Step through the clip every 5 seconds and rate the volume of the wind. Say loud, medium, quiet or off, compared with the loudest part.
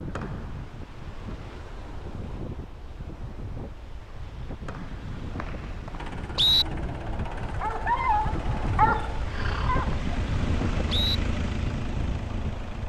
medium, loud, loud.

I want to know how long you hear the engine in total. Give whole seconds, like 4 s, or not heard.
7 s.